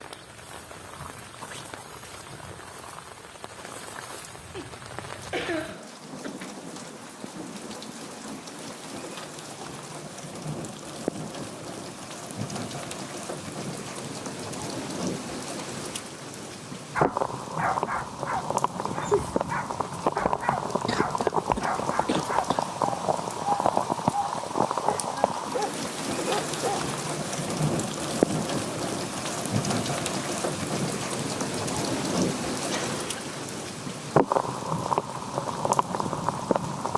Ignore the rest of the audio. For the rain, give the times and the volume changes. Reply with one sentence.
The rain can be heard from 0.0 to 36.9 s, getting louder.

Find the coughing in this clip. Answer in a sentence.
You can hear the coughing from 4.5 to 6.3 s, from 20.9 to 22.8 s and from 32.7 to 33.4 s.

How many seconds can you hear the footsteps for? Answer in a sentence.
The footsteps can't be heard in this clip.